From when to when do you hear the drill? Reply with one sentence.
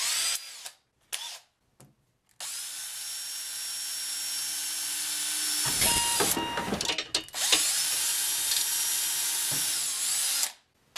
You can hear the drill from 0.0 to 10.9 s.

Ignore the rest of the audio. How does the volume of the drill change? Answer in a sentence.
The loudness of the drill goes up.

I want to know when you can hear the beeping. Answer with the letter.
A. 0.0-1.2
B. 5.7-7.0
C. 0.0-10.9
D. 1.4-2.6
B.